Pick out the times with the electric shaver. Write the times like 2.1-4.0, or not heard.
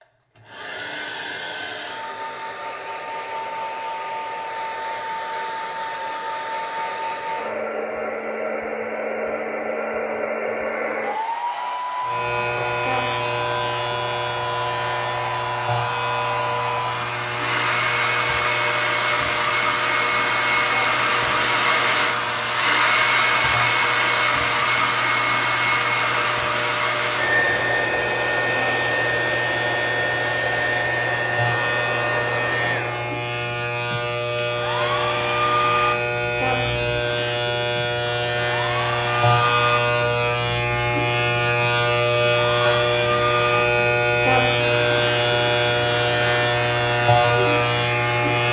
12.0-48.4.